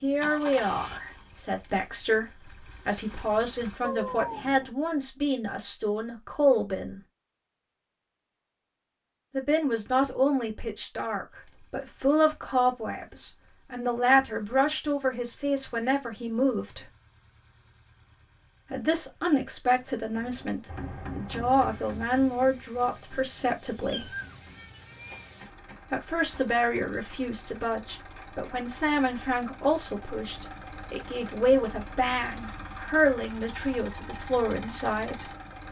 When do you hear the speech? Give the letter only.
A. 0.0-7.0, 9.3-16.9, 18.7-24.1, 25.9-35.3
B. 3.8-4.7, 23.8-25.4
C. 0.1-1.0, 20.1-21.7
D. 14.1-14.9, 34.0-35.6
A.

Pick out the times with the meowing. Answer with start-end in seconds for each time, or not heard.
3.8-4.7, 23.8-25.4.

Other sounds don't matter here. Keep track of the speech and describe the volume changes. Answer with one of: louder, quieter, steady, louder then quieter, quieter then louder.
steady.